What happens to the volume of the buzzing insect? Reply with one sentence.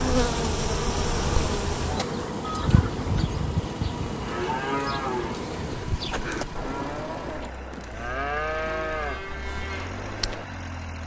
The volume of the buzzing insect goes down.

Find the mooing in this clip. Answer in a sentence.
The mooing can be heard from 1.9 to 10.4 s.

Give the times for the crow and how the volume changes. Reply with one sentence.
You can't hear the crow here.